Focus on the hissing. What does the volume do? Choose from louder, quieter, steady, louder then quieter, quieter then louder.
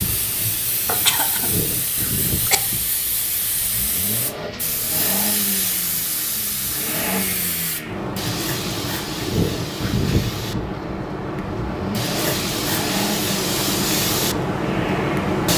louder.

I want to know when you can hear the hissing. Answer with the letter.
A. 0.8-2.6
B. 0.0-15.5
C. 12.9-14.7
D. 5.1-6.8
B.